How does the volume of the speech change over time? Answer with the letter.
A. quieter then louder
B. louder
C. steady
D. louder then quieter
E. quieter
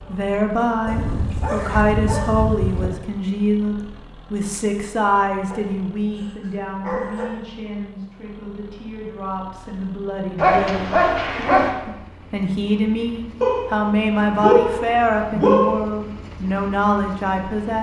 A.